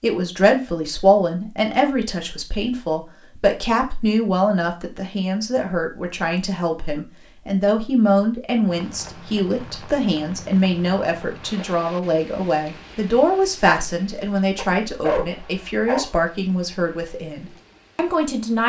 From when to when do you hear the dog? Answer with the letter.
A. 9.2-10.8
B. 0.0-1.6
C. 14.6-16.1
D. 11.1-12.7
C.